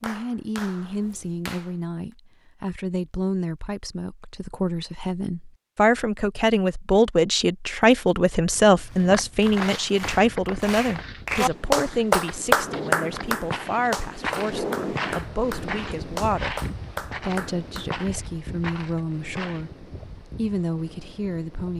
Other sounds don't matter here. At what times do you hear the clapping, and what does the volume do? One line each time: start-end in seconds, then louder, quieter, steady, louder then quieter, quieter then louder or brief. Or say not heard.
0.0-1.8 brief
8.9-17.9 louder then quieter.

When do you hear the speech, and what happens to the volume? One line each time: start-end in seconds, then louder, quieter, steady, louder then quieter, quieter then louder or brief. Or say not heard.
0.0-19.7 louder then quieter
20.4-21.7 brief.